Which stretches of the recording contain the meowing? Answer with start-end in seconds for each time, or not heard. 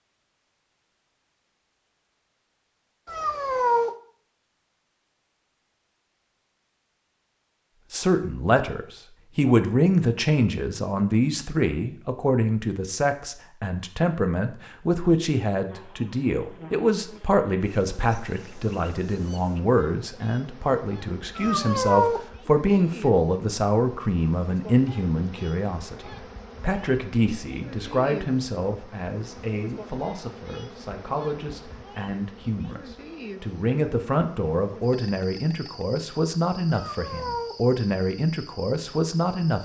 3.0-3.9, 21.4-22.2, 36.7-37.5.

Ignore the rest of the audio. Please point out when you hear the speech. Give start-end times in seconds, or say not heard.
7.9-39.5.